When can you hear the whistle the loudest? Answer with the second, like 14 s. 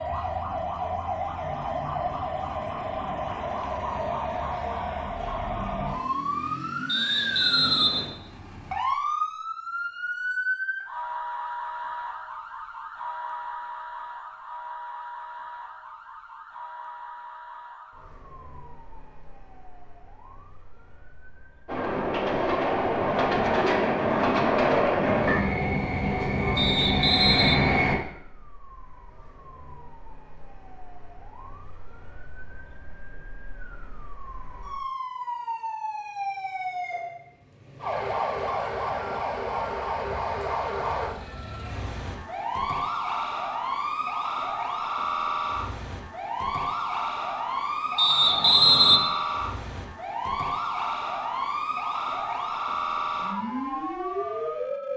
49 s.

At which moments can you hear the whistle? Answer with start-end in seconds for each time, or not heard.
6.8-8.1, 26.6-27.6, 48.0-49.0.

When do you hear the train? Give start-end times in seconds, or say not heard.
21.6-27.9.